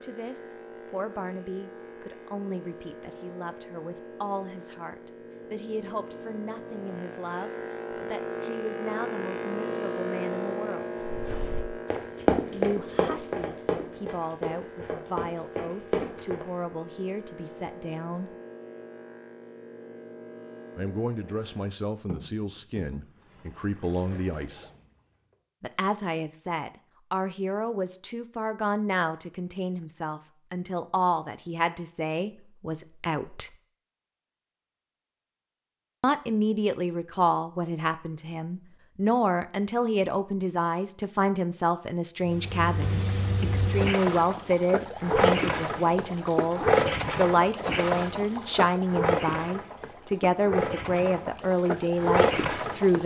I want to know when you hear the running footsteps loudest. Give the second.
12 s.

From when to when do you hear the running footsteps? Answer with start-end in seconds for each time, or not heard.
11.0-16.4.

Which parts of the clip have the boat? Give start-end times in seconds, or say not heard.
0.0-25.4, 42.2-53.0.